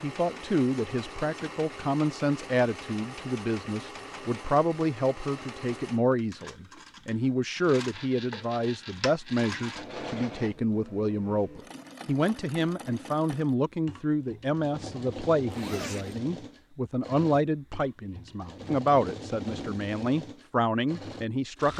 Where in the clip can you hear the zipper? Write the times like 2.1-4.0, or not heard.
15.5-16.2.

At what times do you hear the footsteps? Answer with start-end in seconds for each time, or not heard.
not heard.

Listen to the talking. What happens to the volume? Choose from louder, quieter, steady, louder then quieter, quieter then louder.
steady.